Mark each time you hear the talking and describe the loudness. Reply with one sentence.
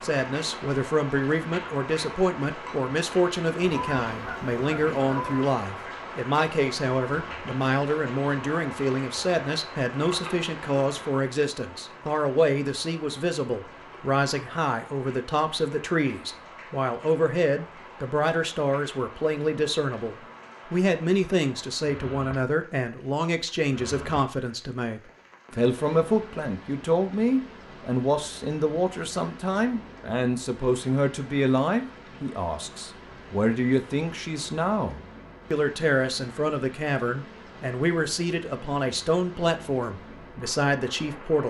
The talking can be heard from 0.0 to 41.4 s, at a steady volume.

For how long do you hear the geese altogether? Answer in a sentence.
The geese can be heard for 2 seconds in total.